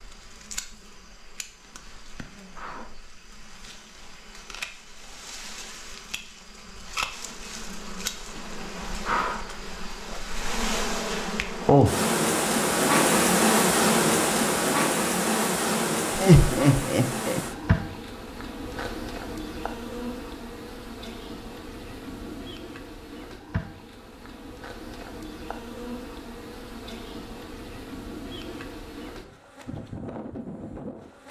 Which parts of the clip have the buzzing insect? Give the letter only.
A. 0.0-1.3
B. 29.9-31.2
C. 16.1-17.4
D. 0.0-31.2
D.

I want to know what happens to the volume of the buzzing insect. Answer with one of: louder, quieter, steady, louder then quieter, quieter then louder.
louder then quieter.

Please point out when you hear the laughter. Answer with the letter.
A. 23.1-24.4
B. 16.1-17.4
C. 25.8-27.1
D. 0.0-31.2
B.